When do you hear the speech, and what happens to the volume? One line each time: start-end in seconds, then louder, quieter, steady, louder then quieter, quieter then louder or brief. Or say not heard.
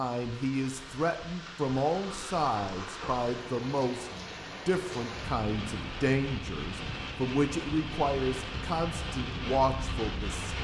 0.0-10.6 steady.